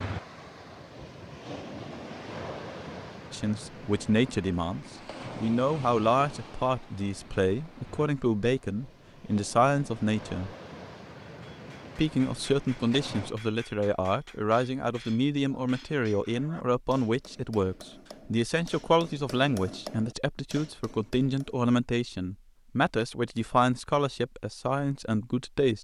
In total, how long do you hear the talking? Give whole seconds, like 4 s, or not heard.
21 s.